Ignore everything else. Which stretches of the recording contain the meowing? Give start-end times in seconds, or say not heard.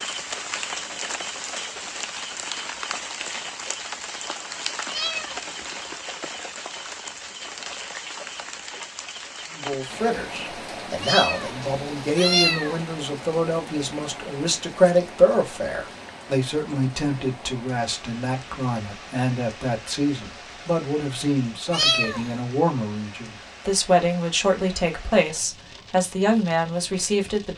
4.8-5.8, 11.0-12.8, 21.7-22.4.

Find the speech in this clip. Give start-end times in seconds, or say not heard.
9.5-27.5.